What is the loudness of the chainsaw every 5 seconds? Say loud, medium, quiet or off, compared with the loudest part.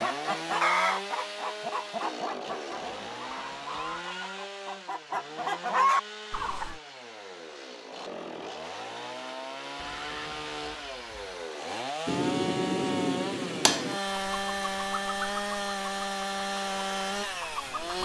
medium, medium, loud, loud.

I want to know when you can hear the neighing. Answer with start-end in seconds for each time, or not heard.
2.8-4.5, 9.8-11.4.